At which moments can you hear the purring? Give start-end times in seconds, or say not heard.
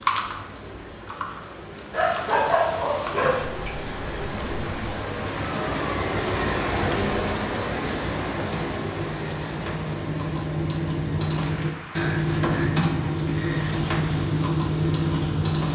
not heard.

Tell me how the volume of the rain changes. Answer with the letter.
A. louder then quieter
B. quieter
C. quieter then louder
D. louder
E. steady
A.